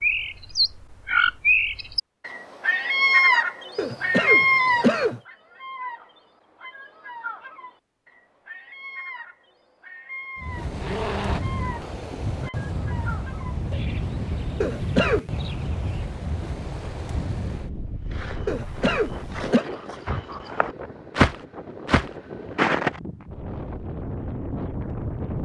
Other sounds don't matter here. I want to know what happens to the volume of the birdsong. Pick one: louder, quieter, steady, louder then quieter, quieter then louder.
quieter.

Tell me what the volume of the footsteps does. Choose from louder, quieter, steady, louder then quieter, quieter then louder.
louder then quieter.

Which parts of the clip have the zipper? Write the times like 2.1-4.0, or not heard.
10.7-11.4.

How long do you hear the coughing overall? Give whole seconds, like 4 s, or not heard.
3 s.